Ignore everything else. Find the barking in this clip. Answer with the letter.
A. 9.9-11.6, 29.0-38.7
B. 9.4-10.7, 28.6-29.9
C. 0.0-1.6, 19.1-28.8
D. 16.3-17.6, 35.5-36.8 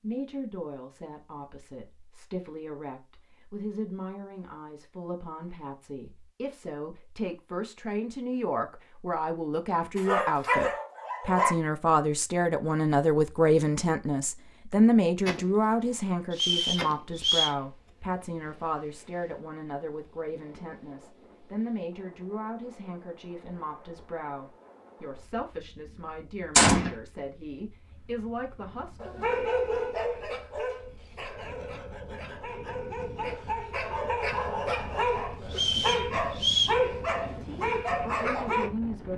A.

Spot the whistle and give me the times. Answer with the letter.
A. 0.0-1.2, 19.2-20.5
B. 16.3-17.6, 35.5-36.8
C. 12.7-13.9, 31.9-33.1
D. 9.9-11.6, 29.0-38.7
B.